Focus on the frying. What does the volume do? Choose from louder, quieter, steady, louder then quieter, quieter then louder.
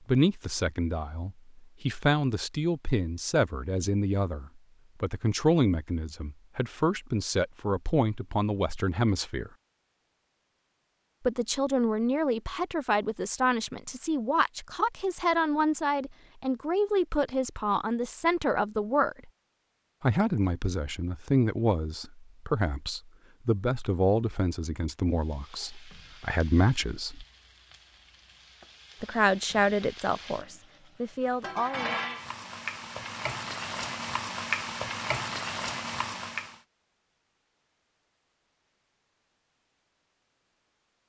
louder.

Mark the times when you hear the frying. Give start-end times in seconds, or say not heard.
25.1-36.6.